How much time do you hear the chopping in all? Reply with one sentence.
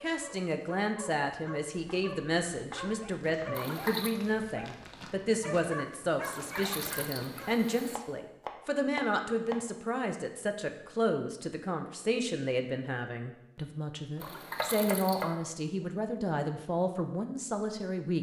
You can hear the chopping for 5 seconds altogether.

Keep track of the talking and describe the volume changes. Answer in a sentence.
The volume of the talking stays about the same.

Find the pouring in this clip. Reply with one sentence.
The pouring can be heard from 3.5 to 4.2 s, from 6.2 to 8.0 s and from 14.2 to 15.3 s.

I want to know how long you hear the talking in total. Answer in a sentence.
You can hear the talking for 18 seconds altogether.